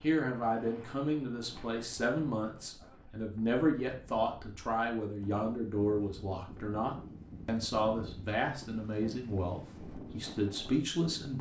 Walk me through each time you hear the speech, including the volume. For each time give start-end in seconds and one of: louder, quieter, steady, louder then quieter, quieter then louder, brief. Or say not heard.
0.0-11.3 steady.